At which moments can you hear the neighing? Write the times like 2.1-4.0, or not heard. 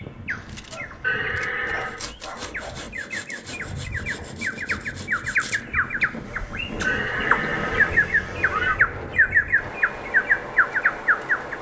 1.0-2.0, 6.8-8.8.